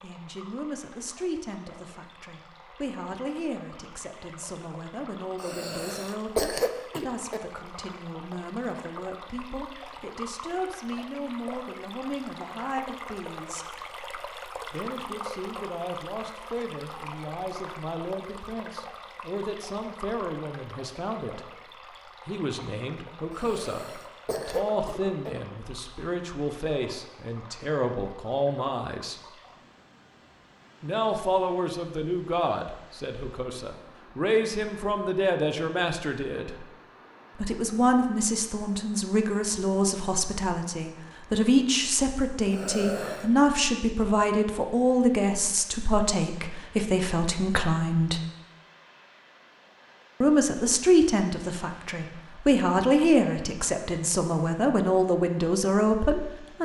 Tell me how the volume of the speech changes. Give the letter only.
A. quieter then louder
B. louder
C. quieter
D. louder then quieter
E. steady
B.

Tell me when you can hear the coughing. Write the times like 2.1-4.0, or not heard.
5.4-7.4, 23.3-25.3, 42.5-43.4.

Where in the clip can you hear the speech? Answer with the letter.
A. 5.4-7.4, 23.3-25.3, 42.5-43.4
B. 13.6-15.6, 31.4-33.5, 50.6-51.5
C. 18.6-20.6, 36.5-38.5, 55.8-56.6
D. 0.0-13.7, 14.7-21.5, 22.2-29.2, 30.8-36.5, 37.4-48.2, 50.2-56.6
D.